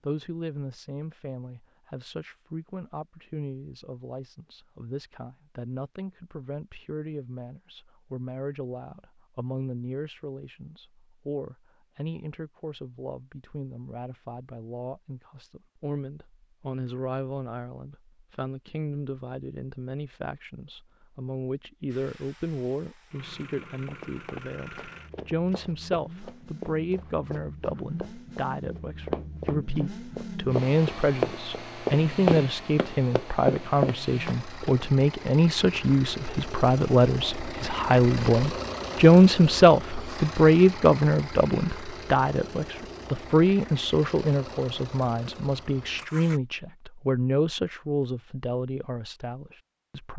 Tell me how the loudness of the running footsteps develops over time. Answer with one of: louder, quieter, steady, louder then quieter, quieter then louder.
louder.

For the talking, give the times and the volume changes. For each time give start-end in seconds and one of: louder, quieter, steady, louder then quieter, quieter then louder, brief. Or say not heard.
0.0-50.1 louder.